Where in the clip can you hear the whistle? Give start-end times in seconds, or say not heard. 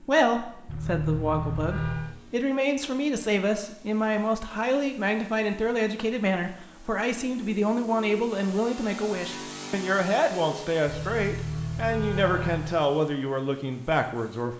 not heard.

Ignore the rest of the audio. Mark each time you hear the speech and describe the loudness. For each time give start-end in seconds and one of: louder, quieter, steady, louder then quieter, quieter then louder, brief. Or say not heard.
0.0-14.5 steady.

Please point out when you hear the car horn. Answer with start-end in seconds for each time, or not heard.
0.7-2.1, 10.8-12.8.